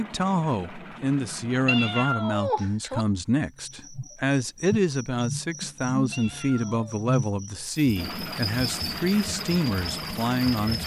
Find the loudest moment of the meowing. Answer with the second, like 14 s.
2 s.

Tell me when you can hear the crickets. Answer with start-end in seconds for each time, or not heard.
3.5-10.8.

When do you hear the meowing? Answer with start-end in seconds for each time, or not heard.
1.6-3.0, 6.1-7.0.